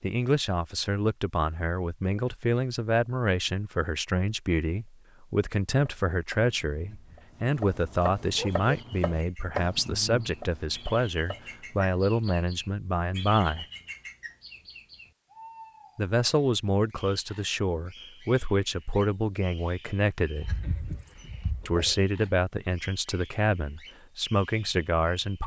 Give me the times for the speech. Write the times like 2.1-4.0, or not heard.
0.0-13.7, 15.9-20.6, 21.6-25.4.